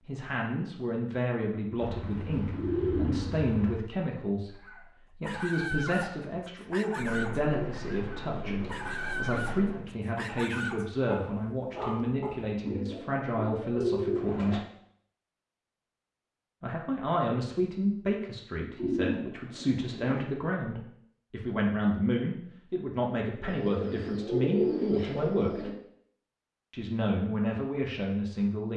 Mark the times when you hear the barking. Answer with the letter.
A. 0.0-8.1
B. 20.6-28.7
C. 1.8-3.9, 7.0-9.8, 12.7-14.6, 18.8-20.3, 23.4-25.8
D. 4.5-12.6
D.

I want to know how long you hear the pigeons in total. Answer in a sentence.
You can hear the pigeons for 11 seconds altogether.